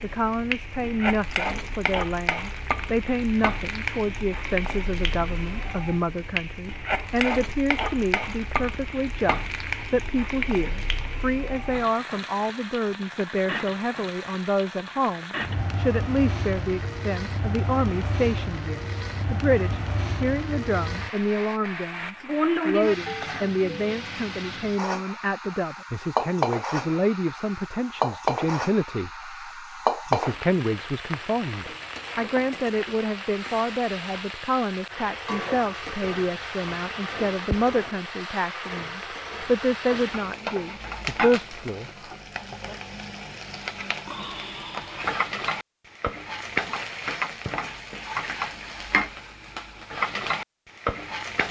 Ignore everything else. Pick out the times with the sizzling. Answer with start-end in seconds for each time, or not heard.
0.0-51.4.